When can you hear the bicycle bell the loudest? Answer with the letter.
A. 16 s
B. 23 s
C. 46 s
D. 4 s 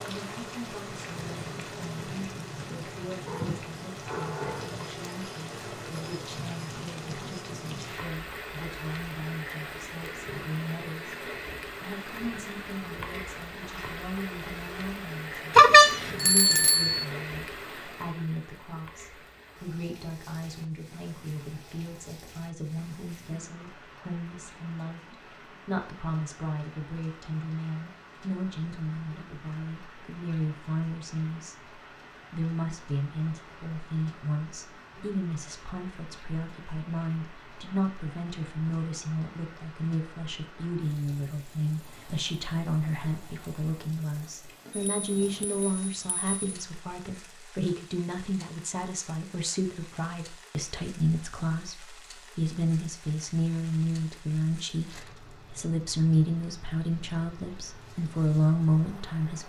A.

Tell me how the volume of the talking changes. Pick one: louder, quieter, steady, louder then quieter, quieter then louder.
louder.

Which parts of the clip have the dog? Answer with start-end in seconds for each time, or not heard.
3.2-4.9.